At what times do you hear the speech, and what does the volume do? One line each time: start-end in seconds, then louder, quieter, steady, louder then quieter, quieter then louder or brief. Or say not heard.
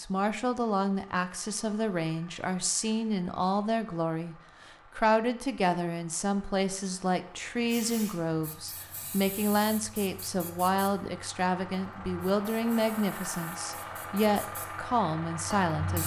0.0-16.0 steady.